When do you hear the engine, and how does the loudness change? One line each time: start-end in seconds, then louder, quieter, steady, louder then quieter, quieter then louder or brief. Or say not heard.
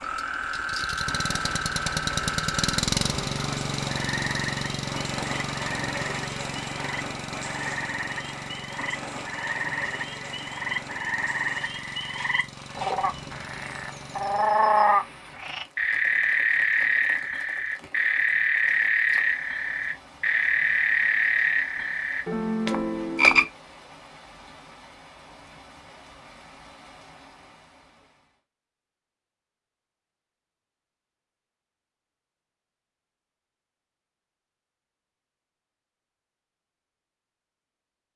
0.0-14.8 quieter.